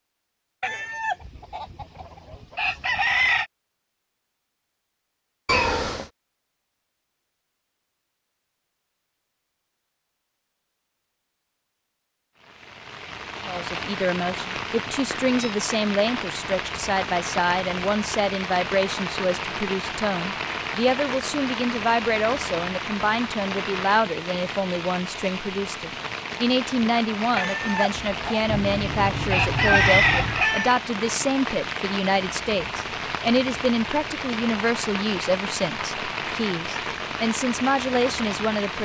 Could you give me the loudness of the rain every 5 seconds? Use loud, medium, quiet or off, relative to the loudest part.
off, off, loud, loud, loud, loud, loud, loud.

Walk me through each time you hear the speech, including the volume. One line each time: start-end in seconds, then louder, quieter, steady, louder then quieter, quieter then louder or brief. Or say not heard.
13.4-38.7 steady.